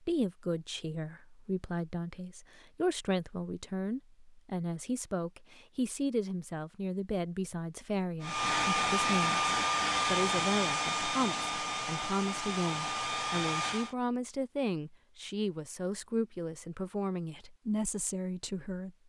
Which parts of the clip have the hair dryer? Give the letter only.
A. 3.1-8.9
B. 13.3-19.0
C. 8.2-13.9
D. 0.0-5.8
C.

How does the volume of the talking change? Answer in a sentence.
The volume of the talking stays about the same.